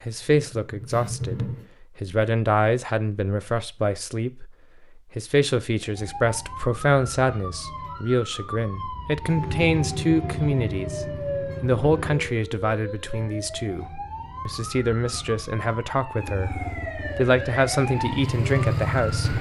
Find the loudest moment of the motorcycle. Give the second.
19 s.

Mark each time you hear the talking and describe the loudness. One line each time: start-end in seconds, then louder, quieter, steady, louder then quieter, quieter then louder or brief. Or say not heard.
0.0-19.3 steady.